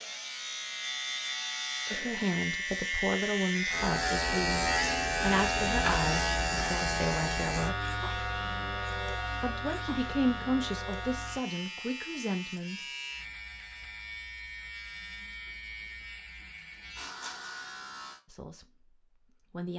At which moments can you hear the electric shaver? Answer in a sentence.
You can hear the electric shaver from 0.0 to 18.2 s.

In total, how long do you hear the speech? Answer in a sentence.
The speech can be heard for 11 seconds in total.